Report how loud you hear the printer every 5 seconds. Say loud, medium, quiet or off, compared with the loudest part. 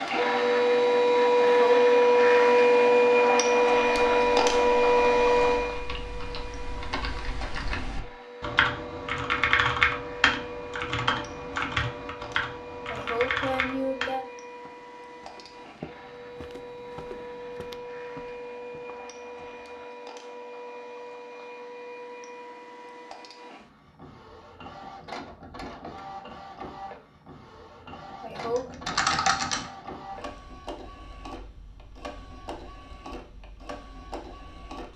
loud, medium, quiet, quiet, quiet, quiet, quiet.